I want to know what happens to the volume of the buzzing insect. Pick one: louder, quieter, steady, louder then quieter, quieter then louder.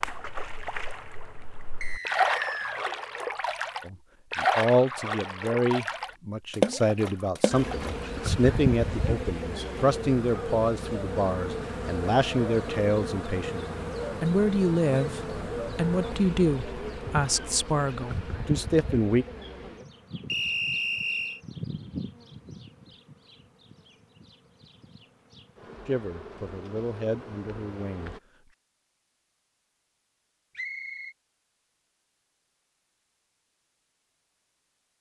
quieter.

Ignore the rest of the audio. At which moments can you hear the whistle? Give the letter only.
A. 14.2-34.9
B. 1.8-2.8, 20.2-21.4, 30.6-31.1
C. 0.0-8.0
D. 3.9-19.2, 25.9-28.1
B.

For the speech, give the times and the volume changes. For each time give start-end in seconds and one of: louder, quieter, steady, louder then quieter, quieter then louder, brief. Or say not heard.
3.9-19.2 steady
25.9-28.1 brief.